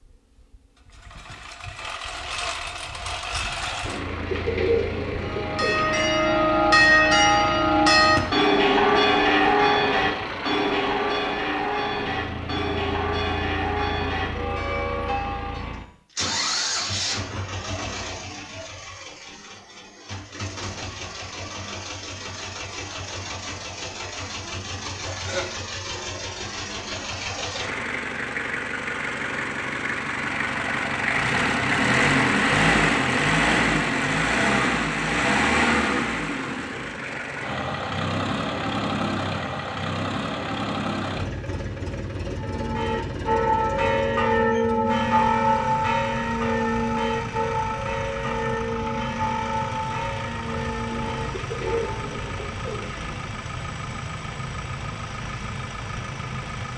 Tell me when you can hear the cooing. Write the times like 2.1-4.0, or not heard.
3.9-6.0, 50.9-53.2.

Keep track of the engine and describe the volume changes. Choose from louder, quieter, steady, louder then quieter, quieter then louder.
louder then quieter.